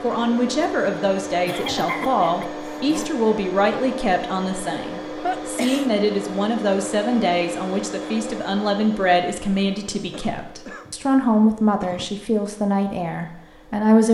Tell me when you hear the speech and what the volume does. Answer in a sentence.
You can hear the speech from 0.0 to 14.0 s, at a steady volume.